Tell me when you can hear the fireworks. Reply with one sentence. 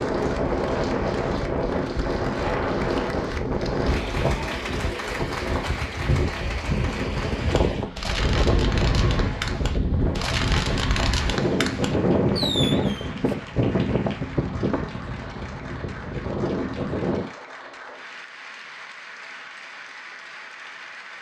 You can hear the fireworks from 7.4 to 13.3 s.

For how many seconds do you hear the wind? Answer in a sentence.
You can hear the wind for 17 seconds altogether.